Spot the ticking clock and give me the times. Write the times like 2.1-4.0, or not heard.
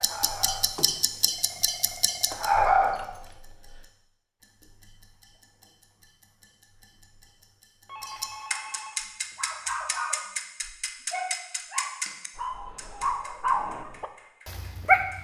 0.0-15.2.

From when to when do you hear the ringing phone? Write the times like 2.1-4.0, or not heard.
0.8-3.3, 7.8-9.5.